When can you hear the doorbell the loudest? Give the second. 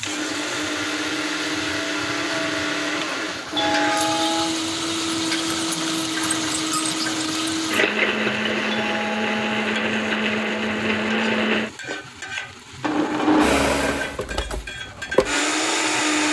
4 s.